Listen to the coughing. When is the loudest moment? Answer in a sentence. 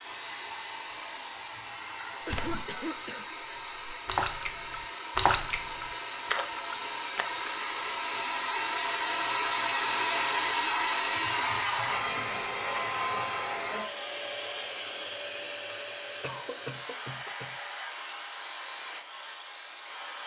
The volume of the coughing peaks at 2 seconds.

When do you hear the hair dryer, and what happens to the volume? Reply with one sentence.
You can hear the hair dryer from 0.0 to 20.2 s, getting louder then quieter.